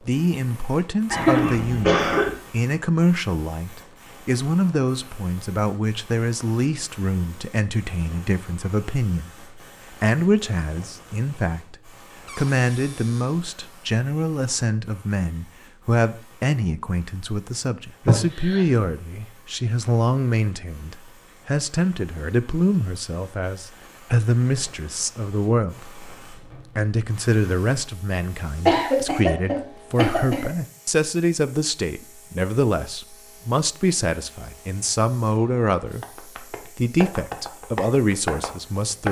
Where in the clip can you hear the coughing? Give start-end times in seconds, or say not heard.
1.1-2.3, 18.1-18.6, 28.6-30.5.